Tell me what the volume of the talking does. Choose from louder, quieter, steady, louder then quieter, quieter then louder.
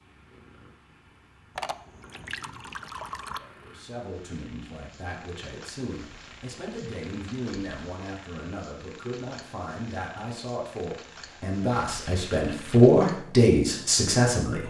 louder.